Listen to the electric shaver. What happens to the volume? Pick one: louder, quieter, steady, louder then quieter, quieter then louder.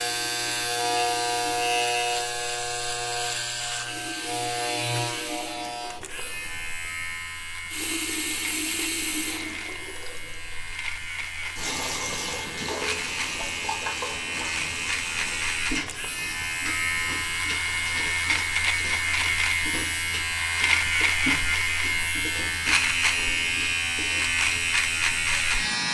quieter then louder.